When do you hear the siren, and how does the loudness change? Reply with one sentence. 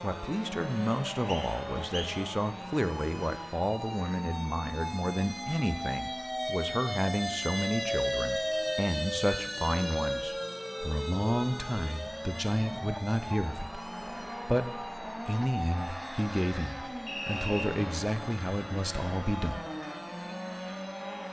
You can hear the siren from 0.0 to 21.2 s, getting louder then quieter.